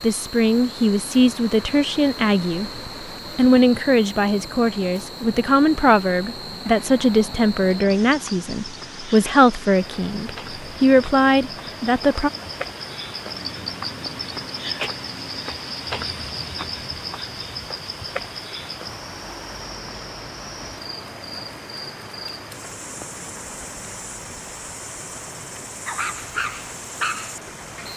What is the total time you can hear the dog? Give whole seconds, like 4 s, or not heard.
2 s.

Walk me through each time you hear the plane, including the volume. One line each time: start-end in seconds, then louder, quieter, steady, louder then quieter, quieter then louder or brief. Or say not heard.
not heard.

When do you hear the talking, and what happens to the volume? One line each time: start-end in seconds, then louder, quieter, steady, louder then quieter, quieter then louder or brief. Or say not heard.
0.0-12.3 steady.